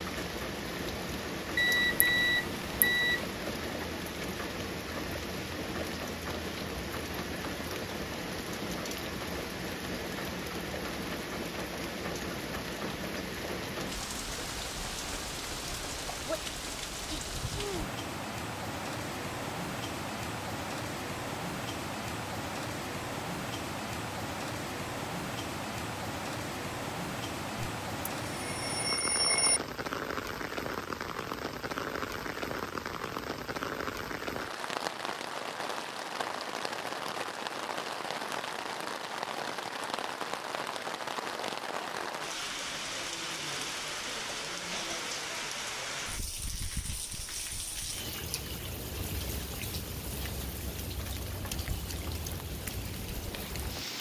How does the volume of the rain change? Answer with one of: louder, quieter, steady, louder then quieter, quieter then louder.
steady.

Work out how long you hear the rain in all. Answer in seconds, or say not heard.
54 s.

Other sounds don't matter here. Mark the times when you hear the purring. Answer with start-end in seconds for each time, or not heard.
not heard.